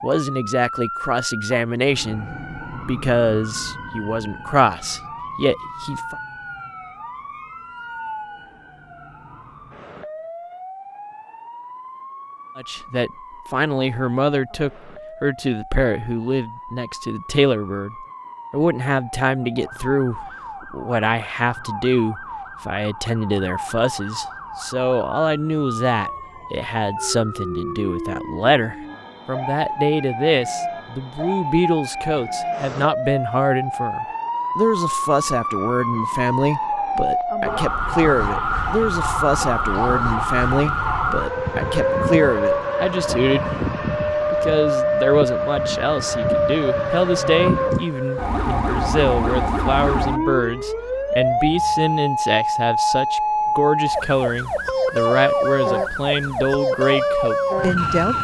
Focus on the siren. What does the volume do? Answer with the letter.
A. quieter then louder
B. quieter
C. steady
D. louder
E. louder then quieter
D.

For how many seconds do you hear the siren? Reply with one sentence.
You can hear the siren for 58 seconds altogether.